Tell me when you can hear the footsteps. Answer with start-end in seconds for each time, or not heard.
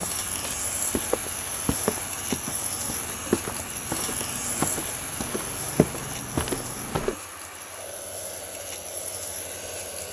0.0-7.2.